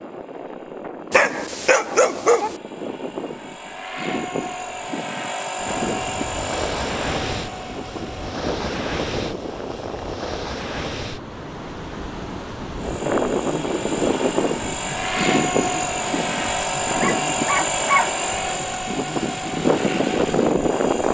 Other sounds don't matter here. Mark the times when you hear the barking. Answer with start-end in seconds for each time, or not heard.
1.1-2.5, 16.9-18.8.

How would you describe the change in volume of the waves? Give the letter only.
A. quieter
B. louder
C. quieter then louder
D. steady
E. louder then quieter
A.